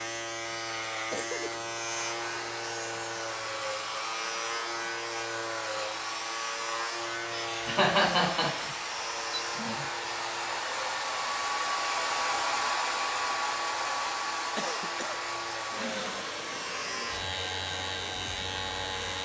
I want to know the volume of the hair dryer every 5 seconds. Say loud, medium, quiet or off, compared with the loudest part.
medium, medium, loud, medium.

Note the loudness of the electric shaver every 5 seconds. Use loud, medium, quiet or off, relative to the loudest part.
loud, loud, medium, loud.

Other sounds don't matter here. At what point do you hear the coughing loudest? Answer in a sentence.
The volume of the coughing peaks at 8 seconds.